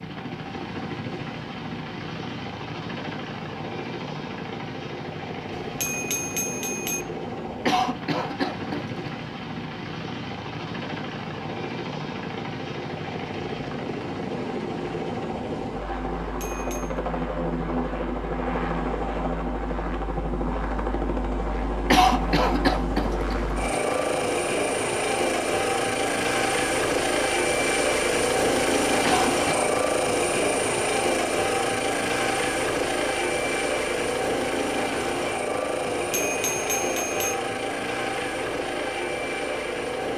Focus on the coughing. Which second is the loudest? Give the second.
22 s.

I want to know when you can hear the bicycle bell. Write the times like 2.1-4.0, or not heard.
5.5-7.0, 16.3-17.0, 36.0-37.4.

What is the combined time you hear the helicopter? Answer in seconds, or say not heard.
40 s.